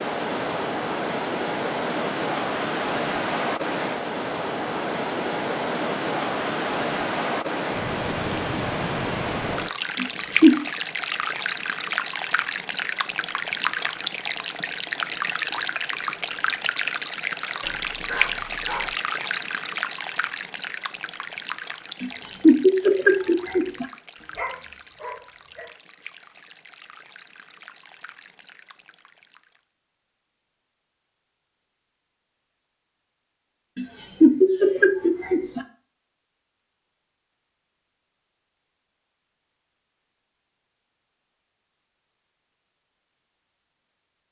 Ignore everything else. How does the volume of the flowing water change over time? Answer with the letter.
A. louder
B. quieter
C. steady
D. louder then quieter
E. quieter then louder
B.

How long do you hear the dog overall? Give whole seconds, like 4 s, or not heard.
3 s.